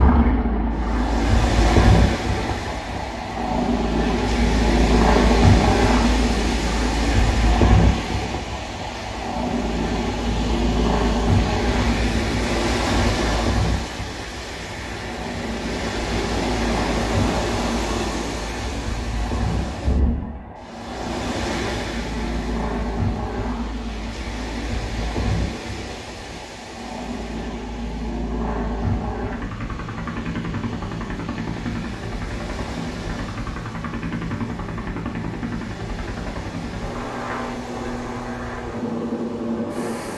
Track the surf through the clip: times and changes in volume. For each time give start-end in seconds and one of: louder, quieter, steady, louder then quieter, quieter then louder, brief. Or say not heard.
0.0-40.1 quieter.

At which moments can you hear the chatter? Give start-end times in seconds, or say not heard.
not heard.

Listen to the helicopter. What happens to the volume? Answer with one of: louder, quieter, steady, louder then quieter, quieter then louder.
quieter.